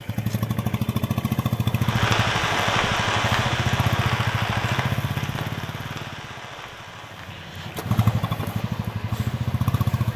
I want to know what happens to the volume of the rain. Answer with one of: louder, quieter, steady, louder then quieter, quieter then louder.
quieter.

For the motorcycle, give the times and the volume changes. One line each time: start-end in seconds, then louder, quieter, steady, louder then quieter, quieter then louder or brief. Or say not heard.
0.0-10.1 quieter then louder.